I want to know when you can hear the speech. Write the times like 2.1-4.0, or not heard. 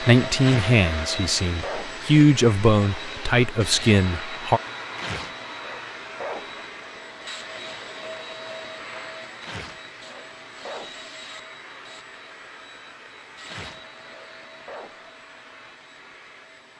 0.0-4.6.